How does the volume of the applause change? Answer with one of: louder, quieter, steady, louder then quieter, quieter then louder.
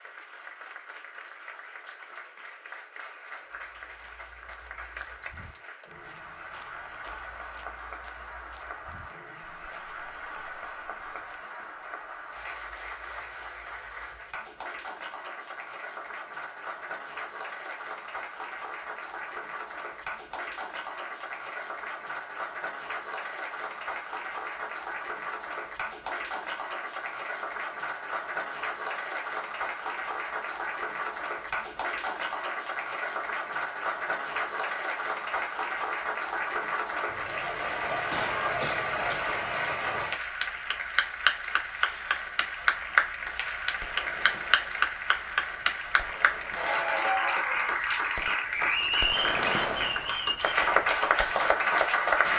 louder.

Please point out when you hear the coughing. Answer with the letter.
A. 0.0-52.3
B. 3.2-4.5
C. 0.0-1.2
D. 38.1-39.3
D.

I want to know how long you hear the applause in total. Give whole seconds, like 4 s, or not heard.
52 s.